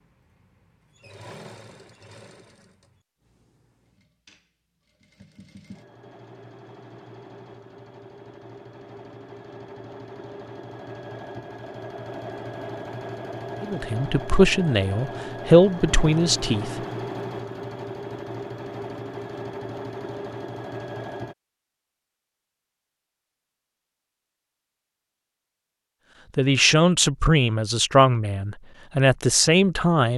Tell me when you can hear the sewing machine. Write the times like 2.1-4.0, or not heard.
0.0-21.4.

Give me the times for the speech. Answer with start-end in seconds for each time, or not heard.
13.6-16.7, 26.4-30.1.